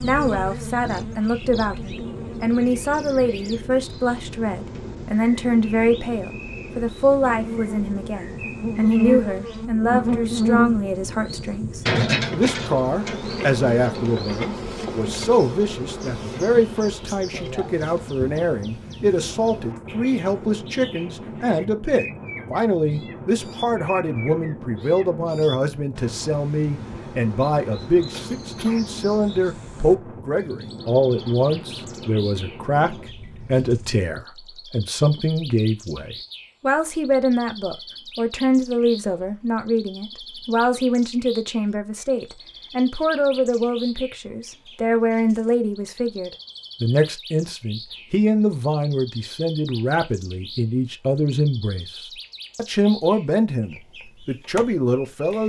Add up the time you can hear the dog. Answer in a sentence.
The dog can't be heard in this clip.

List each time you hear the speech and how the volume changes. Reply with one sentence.
The speech can be heard from 0.0 to 55.4 s, at a steady volume.